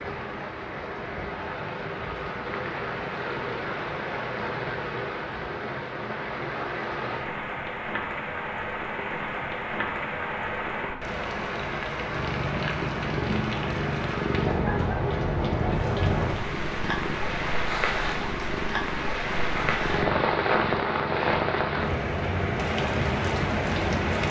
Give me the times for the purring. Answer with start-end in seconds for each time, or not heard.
12.1-24.2.